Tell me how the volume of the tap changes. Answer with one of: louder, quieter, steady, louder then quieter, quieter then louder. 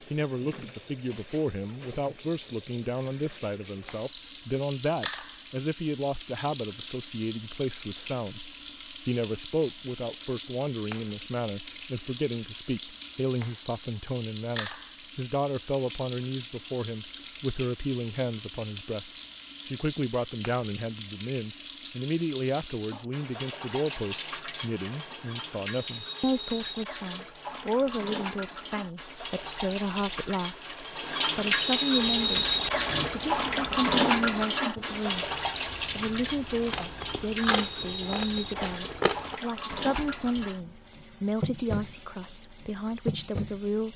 louder then quieter.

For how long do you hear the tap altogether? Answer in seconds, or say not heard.
44 s.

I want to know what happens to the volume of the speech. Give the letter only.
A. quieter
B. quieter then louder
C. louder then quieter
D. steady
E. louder
D.